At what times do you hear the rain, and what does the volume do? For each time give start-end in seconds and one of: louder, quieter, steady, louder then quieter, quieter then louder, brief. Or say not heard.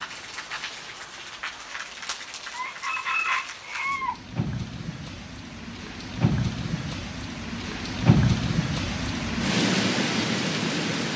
0.0-11.1 louder.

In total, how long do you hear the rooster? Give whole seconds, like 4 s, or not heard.
2 s.